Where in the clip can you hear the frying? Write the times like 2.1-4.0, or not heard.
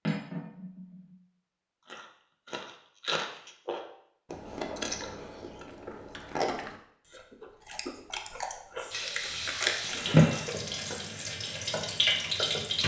8.9-12.8.